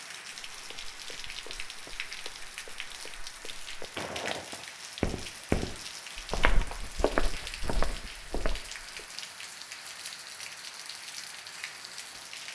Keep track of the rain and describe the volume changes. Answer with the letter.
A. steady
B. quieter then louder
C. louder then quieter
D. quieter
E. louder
A.